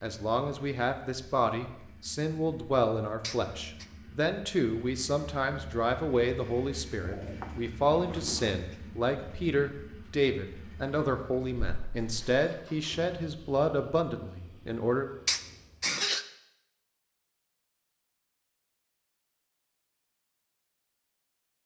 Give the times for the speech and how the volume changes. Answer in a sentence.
The speech can be heard from 0.0 to 15.1 s, at a steady volume.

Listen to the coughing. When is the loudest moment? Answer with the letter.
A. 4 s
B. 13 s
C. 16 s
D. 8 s
C.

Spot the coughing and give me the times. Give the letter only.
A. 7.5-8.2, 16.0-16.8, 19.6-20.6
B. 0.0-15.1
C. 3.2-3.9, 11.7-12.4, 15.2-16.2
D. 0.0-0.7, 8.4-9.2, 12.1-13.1
C.